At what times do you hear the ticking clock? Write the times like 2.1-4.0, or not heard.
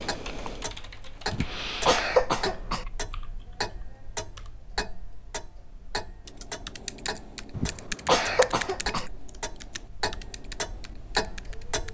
0.0-11.8.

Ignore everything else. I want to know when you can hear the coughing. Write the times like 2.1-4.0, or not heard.
1.3-2.9, 7.5-9.1.